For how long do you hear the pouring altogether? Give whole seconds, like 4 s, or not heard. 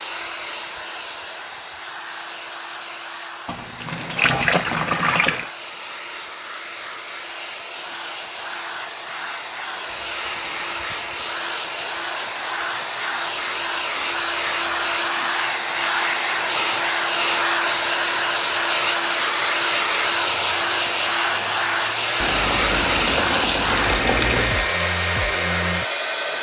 6 s.